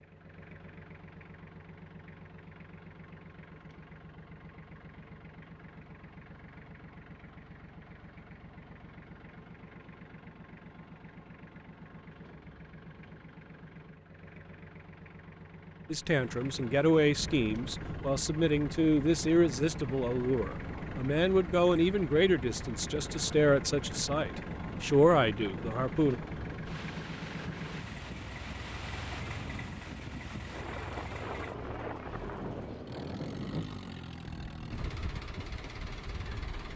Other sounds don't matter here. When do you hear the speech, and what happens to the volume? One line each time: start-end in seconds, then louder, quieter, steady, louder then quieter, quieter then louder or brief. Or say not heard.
15.9-26.1 steady.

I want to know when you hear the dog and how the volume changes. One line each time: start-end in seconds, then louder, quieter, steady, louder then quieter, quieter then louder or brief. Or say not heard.
not heard.